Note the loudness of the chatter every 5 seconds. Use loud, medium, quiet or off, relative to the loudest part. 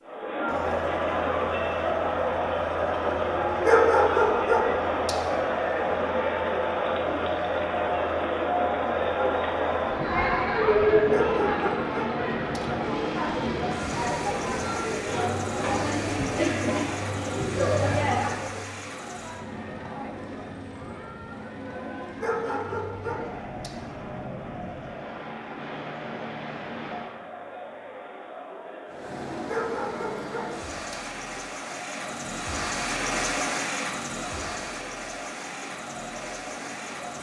loud, loud, loud, loud, quiet, quiet, quiet, quiet.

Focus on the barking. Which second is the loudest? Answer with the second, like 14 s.
4 s.